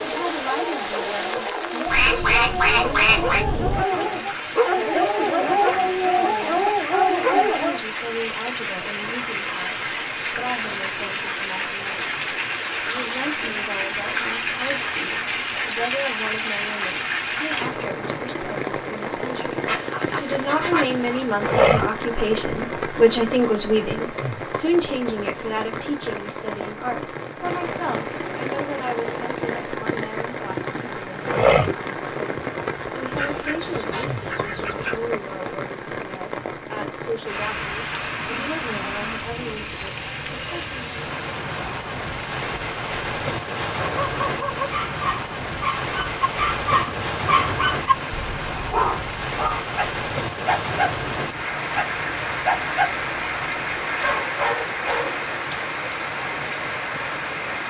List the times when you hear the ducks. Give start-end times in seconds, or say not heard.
1.9-3.5, 19.6-21.2, 33.1-35.0, 51.5-54.0.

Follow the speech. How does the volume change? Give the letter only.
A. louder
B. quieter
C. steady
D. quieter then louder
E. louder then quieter
E.